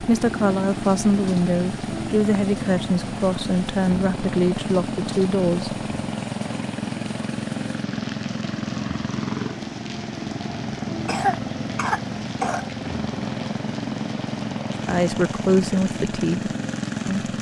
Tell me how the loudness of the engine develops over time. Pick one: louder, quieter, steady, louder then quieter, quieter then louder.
steady.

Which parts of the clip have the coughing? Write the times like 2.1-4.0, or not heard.
11.1-12.7.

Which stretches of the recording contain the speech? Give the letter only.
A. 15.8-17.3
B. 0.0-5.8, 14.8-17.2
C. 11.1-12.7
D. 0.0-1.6
B.